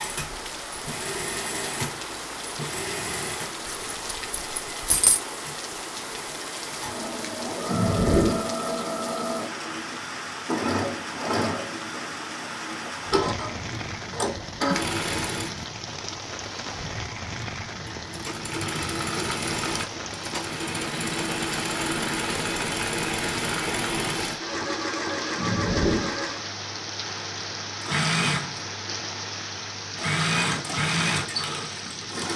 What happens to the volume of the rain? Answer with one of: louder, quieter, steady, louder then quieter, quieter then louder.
steady.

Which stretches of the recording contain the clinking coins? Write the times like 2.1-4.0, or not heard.
3.6-5.2.